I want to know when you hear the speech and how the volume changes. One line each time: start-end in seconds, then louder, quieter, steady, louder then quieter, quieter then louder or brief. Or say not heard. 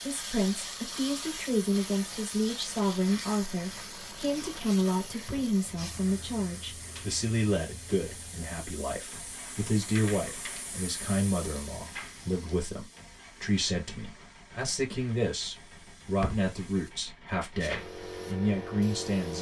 0.0-19.3 steady.